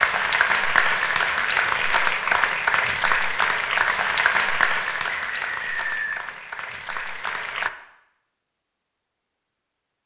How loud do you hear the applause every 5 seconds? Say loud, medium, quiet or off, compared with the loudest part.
loud, medium.